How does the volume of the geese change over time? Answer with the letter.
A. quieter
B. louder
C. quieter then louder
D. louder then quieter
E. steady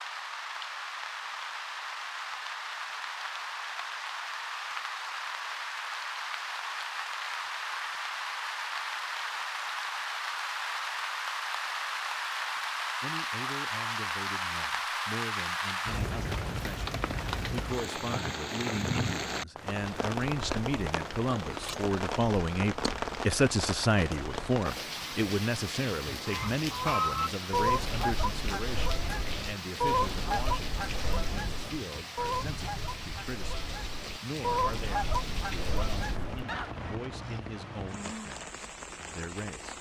C.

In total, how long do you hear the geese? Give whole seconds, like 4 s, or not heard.
11 s.